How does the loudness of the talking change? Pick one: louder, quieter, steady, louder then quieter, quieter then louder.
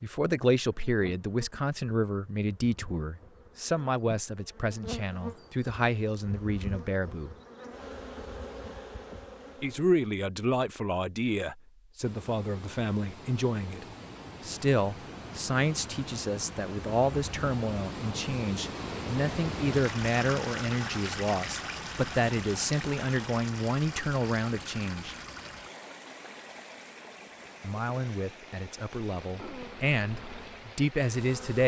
steady.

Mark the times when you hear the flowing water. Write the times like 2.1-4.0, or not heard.
12.0-31.6.